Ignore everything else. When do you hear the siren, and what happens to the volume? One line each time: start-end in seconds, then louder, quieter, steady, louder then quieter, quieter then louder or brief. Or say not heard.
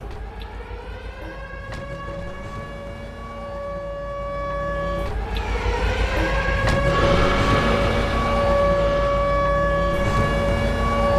0.0-11.1 louder.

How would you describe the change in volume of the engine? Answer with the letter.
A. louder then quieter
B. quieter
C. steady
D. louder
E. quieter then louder
A.